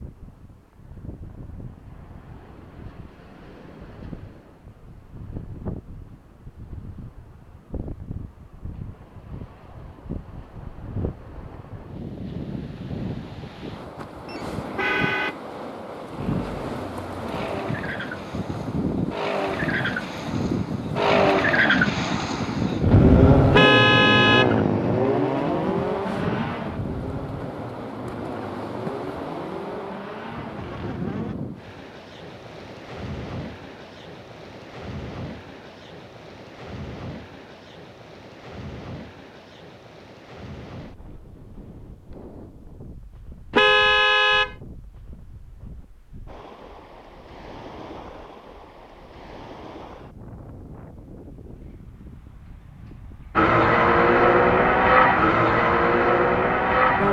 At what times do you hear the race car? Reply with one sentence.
You can hear the race car from 16.1 to 31.4 s and from 53.4 to 57.0 s.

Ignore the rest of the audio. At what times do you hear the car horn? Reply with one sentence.
The car horn can be heard from 14.2 to 15.3 s, from 23.5 to 25.6 s and from 43.5 to 44.5 s.